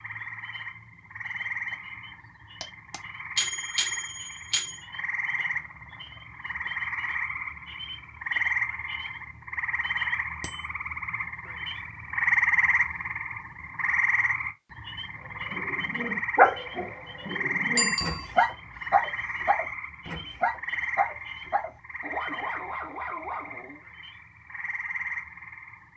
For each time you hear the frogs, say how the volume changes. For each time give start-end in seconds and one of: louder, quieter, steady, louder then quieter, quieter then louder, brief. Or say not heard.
0.0-25.9 louder then quieter.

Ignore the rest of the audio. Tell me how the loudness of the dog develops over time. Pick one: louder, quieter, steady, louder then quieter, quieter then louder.
quieter.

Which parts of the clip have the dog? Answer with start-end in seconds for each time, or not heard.
15.5-23.8.